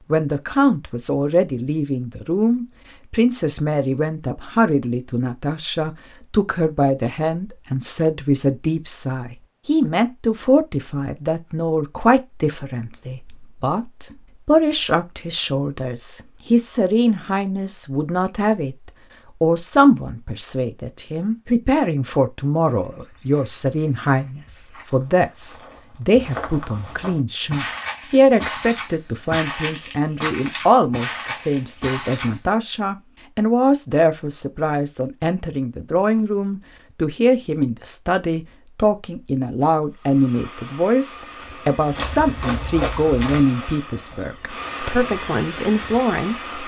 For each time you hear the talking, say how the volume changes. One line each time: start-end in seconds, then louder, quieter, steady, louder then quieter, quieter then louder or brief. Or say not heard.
0.1-46.5 steady.